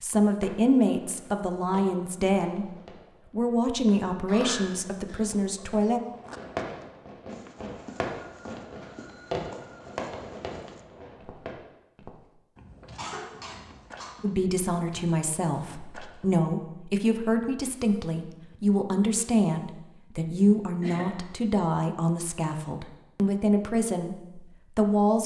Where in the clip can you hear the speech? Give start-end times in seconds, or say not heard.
0.0-2.6, 3.3-6.0, 14.2-25.2.